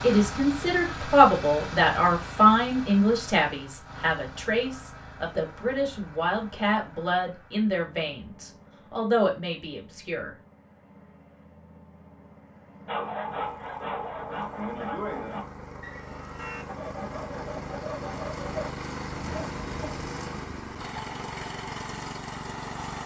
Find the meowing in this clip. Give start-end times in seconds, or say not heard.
not heard.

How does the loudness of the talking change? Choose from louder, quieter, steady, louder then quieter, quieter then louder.
quieter.